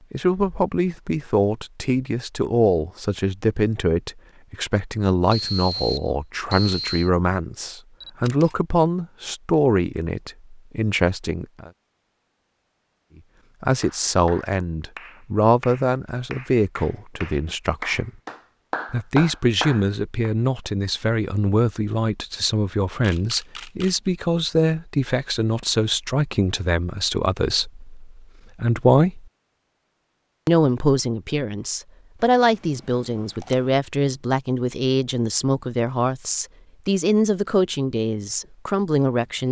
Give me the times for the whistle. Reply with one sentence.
You can hear the whistle from 5.3 to 7.1 s.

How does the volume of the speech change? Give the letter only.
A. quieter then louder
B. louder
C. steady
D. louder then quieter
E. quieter
C.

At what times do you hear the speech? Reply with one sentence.
You can hear the speech from 0.1 to 11.7 s, from 13.6 to 18.1 s, from 18.9 to 29.2 s and from 30.4 to 39.4 s.